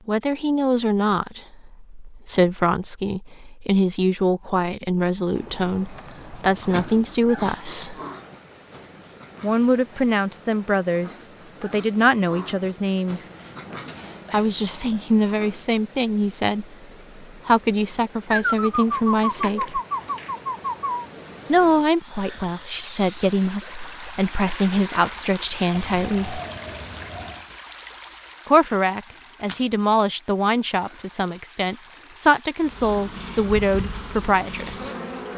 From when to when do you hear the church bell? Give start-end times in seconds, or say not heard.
not heard.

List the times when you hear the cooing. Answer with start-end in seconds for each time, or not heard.
5.3-7.1, 18.3-21.1, 25.7-27.4.